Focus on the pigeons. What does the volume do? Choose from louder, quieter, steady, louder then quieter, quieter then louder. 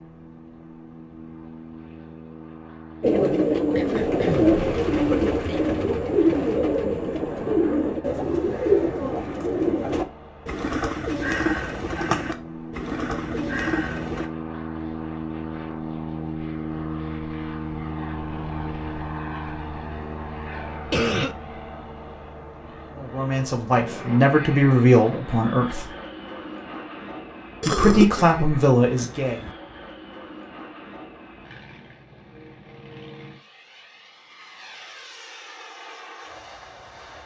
quieter.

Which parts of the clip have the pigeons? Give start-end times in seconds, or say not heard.
3.0-14.3.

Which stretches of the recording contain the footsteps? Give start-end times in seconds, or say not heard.
not heard.